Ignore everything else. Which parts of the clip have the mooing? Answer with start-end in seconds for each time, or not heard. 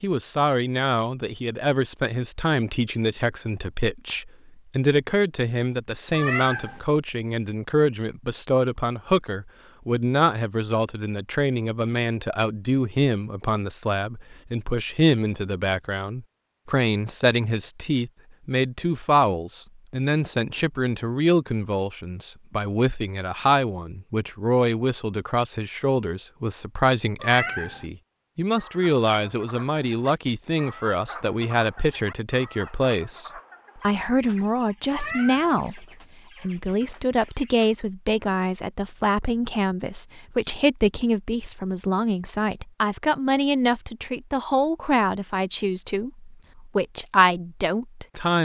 not heard.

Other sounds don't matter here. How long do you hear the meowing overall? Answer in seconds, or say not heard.
2 s.